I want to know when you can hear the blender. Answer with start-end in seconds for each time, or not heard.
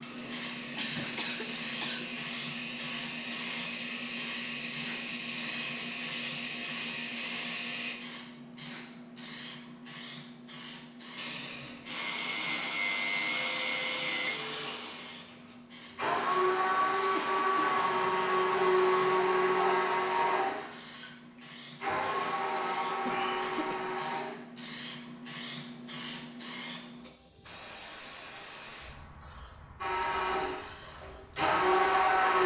0.0-8.0, 11.2-24.4, 29.8-32.4.